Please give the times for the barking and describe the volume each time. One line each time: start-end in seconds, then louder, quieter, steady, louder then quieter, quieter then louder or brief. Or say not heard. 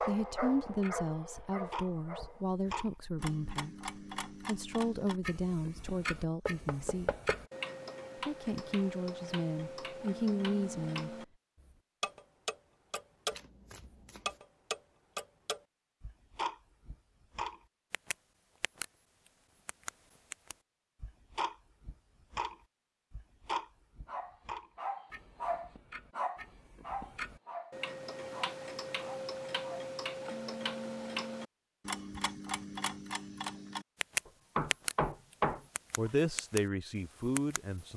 0.0-2.5 brief
24.1-29.9 quieter.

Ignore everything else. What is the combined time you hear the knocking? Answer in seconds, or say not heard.
3 s.